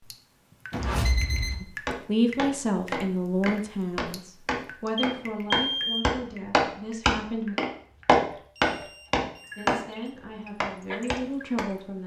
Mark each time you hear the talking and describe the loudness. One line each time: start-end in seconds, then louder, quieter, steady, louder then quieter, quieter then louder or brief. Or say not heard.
1.6-7.5 quieter
9.6-12.0 brief.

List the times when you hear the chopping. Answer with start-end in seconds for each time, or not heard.
1.9-11.7.